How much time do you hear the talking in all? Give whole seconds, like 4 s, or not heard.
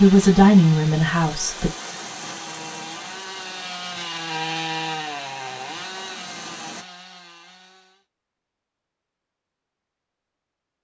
2 s.